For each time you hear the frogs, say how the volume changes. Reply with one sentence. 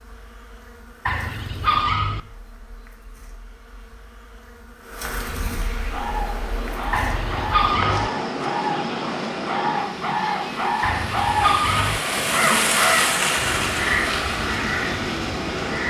The frogs can't be heard in this clip.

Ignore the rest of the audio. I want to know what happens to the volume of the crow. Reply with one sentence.
The volume of the crow goes up, then down.